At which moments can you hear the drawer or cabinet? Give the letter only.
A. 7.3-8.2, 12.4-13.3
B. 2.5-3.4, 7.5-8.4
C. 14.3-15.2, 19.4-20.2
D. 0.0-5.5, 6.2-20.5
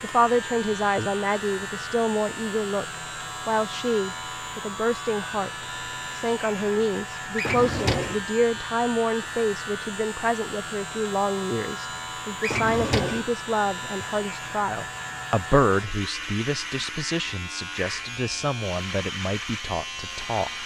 A.